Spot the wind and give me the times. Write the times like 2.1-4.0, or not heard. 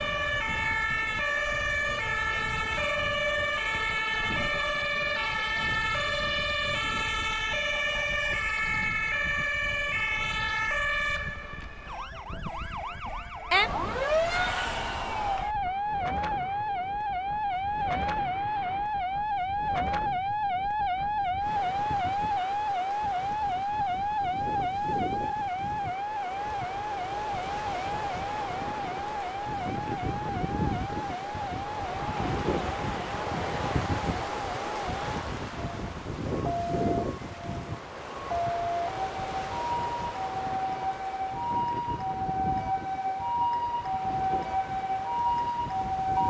0.0-46.2.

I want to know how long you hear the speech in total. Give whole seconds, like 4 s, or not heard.
not heard.